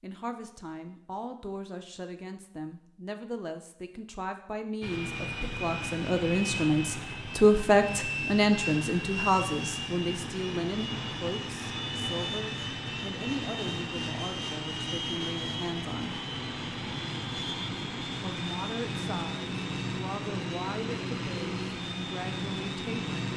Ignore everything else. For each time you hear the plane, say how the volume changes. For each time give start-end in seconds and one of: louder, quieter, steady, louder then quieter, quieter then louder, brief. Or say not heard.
4.8-23.3 steady.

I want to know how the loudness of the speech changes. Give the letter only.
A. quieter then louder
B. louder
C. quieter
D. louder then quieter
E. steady
D.